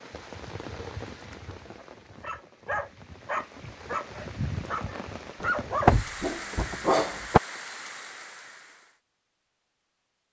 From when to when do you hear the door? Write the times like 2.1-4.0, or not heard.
5.4-7.4.